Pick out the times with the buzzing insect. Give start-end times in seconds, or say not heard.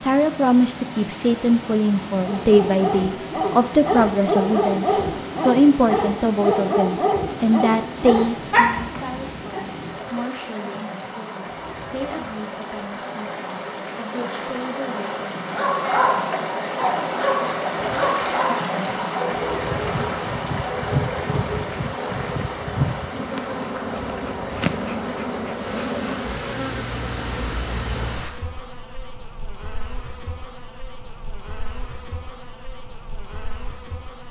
19.7-34.2.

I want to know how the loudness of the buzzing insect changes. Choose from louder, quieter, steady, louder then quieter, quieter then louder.
quieter.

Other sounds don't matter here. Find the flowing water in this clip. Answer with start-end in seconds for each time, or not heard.
0.0-28.3.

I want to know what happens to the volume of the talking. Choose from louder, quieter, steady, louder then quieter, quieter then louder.
quieter.